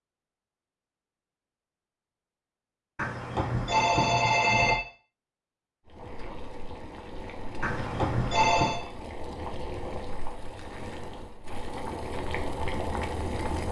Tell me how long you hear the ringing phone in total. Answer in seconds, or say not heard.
3 s.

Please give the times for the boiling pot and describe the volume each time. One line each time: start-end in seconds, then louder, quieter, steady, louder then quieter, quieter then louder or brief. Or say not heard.
5.8-13.6 louder.